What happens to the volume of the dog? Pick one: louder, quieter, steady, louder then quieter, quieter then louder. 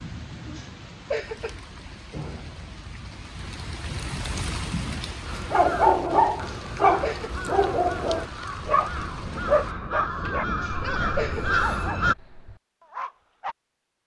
quieter.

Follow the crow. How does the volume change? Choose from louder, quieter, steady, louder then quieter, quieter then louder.
louder.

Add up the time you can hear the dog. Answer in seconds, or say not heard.
8 s.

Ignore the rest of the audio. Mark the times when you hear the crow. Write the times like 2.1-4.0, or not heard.
5.2-12.2.